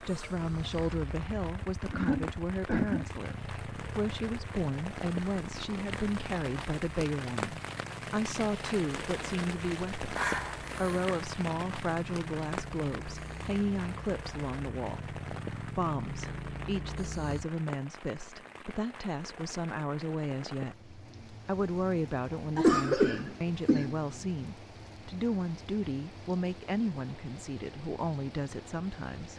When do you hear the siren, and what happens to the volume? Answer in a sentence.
You can't hear the siren here.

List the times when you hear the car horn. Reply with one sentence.
The car horn can't be heard in this clip.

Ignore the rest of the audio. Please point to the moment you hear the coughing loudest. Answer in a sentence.
The volume of the coughing peaks at 23 seconds.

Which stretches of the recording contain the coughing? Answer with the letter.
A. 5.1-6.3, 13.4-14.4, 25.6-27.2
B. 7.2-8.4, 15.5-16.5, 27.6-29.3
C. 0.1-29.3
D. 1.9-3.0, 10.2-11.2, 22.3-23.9
D.